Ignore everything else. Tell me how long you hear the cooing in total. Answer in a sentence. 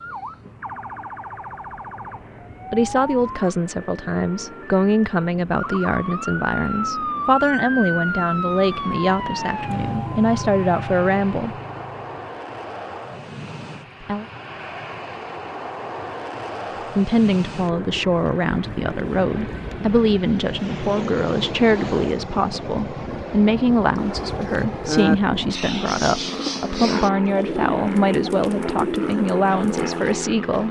You can hear the cooing for 6 seconds altogether.